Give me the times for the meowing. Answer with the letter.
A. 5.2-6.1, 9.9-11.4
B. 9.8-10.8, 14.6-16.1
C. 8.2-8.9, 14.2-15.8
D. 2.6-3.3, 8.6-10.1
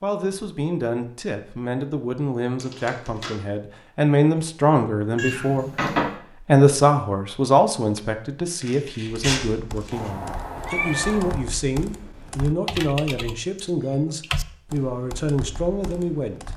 A.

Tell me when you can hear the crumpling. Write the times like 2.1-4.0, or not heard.
2.6-3.3, 8.6-10.1.